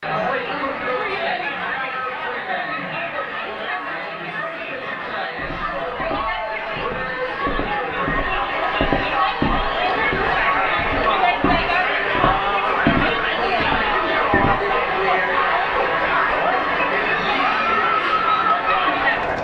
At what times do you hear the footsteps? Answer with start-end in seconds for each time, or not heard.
5.3-14.8.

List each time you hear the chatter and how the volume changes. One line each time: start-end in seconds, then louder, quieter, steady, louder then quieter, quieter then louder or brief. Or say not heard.
0.0-19.3 louder.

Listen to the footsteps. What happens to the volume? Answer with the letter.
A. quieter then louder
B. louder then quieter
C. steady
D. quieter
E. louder
E.